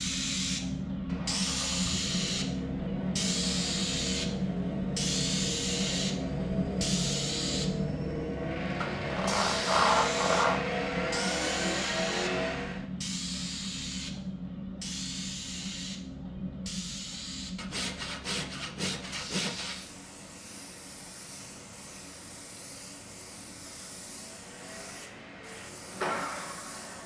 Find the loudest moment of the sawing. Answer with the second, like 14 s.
10 s.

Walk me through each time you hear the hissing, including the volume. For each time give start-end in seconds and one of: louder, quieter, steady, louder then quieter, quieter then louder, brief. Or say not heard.
0.0-27.0 quieter.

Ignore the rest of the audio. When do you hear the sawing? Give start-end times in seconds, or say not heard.
8.8-10.6, 17.6-19.8.